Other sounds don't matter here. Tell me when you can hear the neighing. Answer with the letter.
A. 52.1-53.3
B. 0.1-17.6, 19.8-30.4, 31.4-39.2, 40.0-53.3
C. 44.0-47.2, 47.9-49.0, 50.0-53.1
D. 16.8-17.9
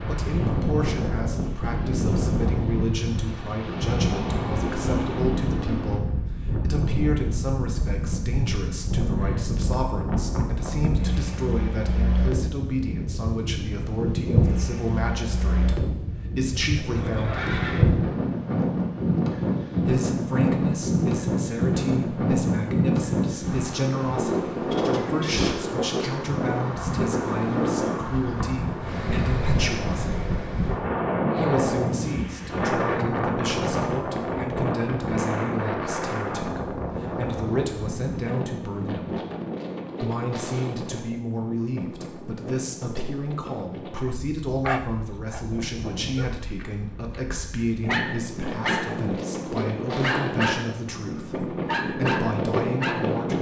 D.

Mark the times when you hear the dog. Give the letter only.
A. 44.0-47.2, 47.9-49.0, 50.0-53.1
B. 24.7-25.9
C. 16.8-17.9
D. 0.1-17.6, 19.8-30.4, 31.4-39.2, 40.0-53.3
A.